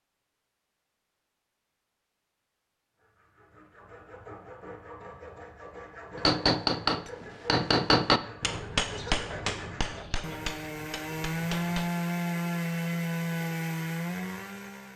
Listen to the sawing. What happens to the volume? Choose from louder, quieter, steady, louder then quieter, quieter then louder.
louder.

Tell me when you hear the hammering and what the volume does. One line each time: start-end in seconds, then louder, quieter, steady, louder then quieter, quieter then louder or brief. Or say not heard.
6.2-11.9 quieter.